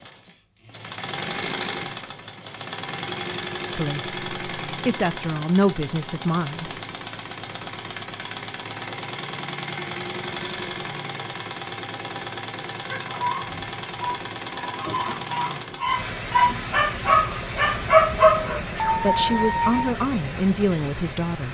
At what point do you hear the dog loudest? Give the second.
18 s.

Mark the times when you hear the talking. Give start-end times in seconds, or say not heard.
3.7-6.7, 19.0-21.4.